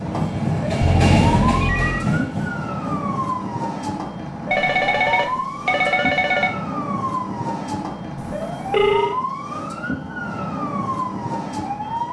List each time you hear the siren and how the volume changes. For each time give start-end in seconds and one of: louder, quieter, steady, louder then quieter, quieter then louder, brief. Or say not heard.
0.0-12.0 steady.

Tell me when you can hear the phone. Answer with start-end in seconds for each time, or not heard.
0.8-2.1, 4.5-6.5, 8.2-9.2.